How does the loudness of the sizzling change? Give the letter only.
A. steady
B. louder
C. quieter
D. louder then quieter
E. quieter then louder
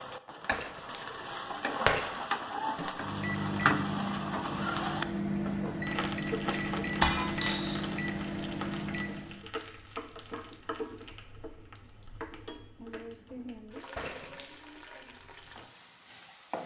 C.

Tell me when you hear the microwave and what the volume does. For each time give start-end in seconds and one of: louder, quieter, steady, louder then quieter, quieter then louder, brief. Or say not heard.
2.8-9.4 steady.